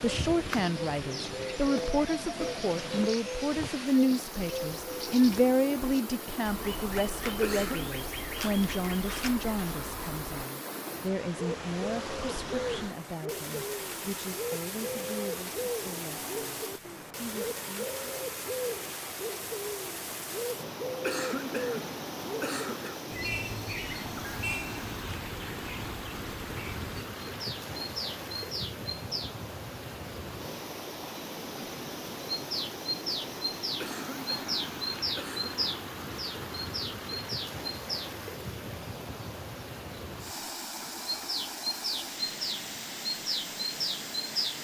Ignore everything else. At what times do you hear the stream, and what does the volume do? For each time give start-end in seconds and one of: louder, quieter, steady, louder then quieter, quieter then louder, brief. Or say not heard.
0.0-44.6 steady.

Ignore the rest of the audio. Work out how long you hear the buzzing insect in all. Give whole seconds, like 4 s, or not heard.
not heard.